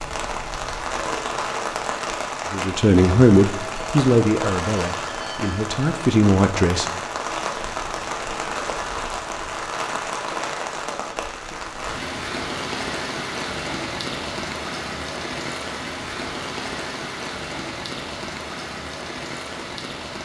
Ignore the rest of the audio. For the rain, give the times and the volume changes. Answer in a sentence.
You can hear the rain from 0.0 to 20.2 s, at a steady volume.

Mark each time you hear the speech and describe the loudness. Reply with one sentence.
You can hear the speech from 2.5 to 6.9 s, getting quieter then louder.